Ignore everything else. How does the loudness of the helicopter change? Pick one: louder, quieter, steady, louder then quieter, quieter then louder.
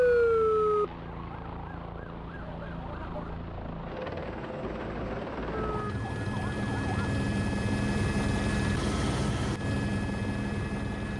louder.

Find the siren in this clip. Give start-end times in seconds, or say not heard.
0.0-3.4, 5.5-7.1.